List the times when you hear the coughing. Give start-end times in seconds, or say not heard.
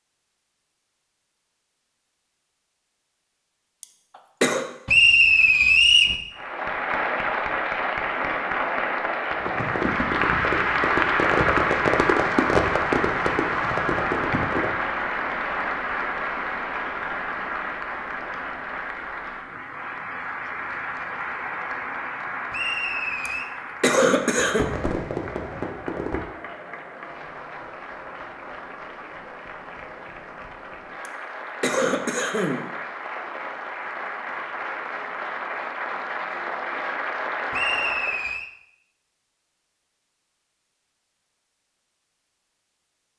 3.8-4.7, 23.2-24.6, 31.1-32.7.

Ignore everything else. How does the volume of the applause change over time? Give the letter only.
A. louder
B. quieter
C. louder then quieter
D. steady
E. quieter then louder
E.